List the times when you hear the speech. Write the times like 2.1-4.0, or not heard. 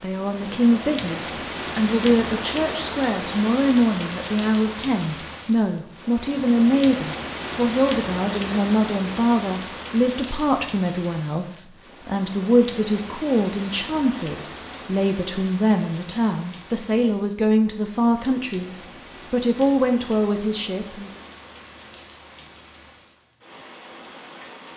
0.0-21.2.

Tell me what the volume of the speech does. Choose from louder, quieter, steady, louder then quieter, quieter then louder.
steady.